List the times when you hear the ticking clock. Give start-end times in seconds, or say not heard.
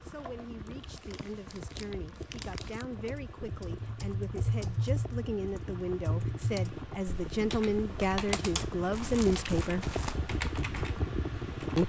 not heard.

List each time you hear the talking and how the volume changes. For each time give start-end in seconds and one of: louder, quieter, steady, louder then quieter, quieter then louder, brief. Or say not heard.
0.0-9.9 louder.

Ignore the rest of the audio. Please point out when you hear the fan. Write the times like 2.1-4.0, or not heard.
0.0-11.8.